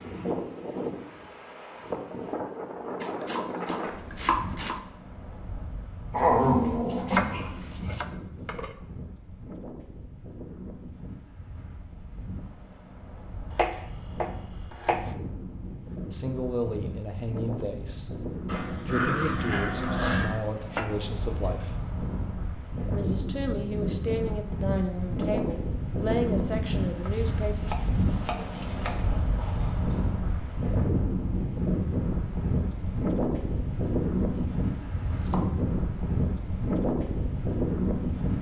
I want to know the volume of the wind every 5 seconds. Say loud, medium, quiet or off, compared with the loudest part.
medium, quiet, quiet, medium, medium, loud, loud, loud.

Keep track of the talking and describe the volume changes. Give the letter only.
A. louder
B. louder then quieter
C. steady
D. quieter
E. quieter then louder
C.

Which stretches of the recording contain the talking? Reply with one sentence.
You can hear the talking from 16.1 to 21.8 s and from 22.9 to 27.6 s.